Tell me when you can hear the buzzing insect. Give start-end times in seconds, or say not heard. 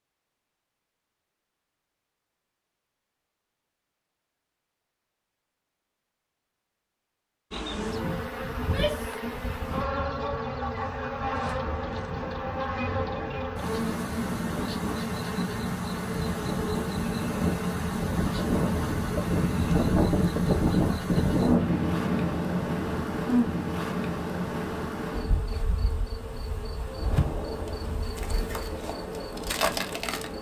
7.5-30.3.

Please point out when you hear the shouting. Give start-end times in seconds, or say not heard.
8.6-9.2.